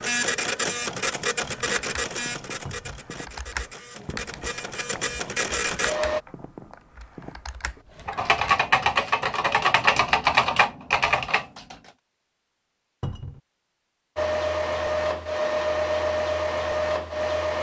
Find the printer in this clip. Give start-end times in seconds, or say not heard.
0.0-6.2, 14.2-17.5.